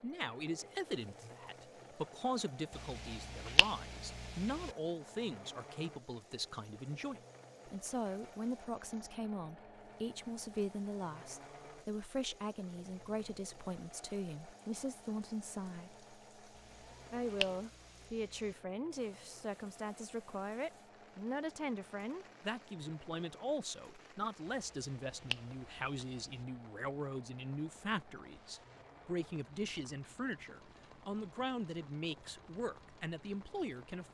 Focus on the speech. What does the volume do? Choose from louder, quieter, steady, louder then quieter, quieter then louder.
steady.